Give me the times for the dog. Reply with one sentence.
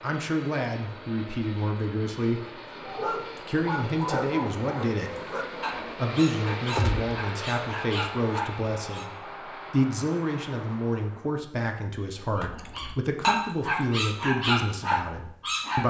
The dog can be heard from 2.7 to 9.1 s and from 12.2 to 15.8 s.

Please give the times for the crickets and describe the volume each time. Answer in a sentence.
You can't hear the crickets here.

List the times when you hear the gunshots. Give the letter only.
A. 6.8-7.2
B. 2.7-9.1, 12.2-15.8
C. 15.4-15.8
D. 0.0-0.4
A.